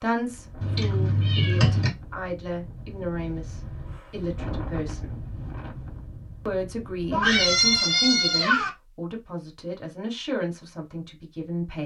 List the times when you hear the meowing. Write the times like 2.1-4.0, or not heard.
0.6-1.9, 7.1-8.7.